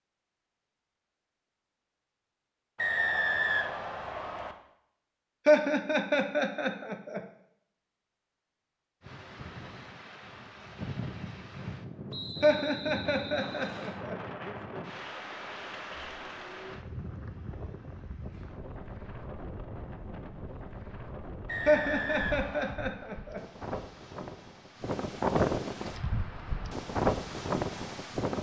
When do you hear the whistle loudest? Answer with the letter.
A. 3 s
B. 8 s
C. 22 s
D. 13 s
A.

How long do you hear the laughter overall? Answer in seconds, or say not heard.
5 s.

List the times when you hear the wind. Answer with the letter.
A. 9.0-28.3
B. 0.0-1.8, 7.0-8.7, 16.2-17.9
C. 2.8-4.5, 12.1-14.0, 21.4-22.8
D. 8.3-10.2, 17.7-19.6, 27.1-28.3
A.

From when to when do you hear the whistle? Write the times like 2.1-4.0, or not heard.
2.8-4.5, 12.1-14.0, 21.4-22.8.